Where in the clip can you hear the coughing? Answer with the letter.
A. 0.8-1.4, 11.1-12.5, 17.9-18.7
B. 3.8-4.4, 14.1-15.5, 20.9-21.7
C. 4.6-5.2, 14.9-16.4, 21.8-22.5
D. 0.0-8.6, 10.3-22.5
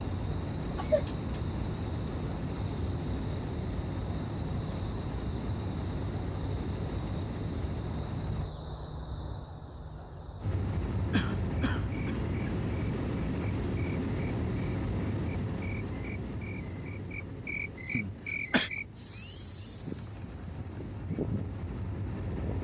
A.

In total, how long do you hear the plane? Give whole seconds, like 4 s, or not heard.
21 s.